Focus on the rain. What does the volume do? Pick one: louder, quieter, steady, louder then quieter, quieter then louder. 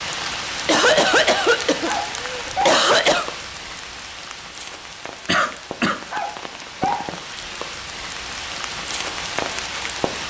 quieter then louder.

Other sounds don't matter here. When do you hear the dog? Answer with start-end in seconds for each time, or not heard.
1.8-2.9, 6.1-7.2.